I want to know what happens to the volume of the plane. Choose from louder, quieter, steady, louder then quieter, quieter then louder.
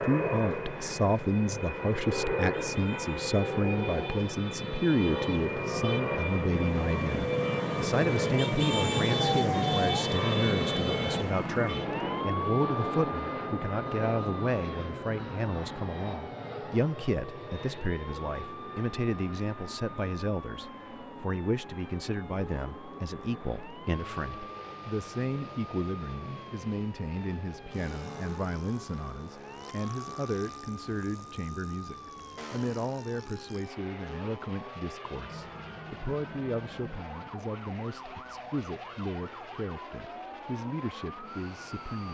quieter.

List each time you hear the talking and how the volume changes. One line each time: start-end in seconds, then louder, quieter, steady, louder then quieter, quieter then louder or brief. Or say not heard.
0.0-42.0 quieter.